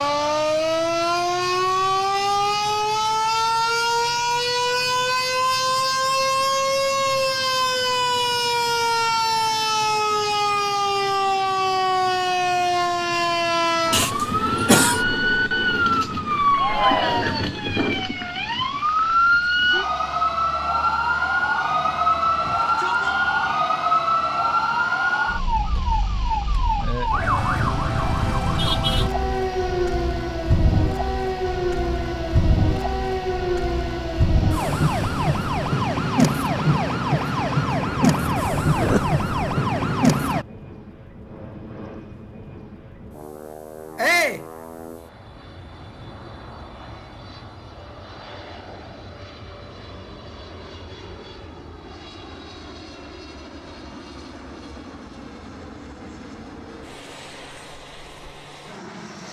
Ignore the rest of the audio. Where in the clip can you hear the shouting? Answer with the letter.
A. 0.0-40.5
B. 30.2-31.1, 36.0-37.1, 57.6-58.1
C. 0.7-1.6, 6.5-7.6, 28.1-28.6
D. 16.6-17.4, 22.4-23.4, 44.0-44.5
D.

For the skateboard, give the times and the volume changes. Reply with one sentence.
The skateboard can't be heard in this clip.